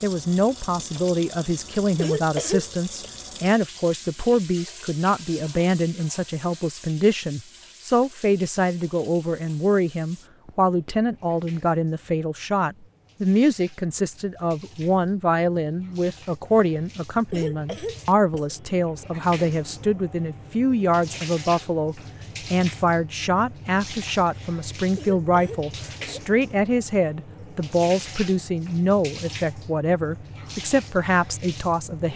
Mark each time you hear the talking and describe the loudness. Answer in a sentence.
You can hear the talking from 0.0 to 32.1 s, at a steady volume.